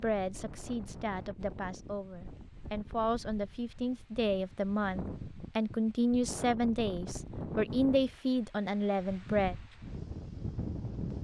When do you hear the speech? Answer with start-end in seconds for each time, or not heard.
0.0-9.6.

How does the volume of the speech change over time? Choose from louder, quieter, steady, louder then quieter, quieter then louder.
louder.